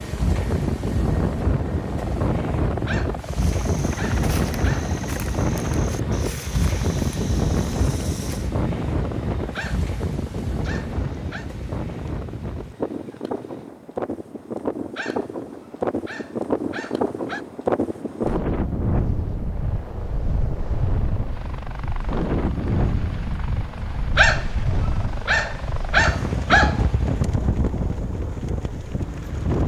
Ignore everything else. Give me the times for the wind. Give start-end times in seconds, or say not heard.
0.0-29.6.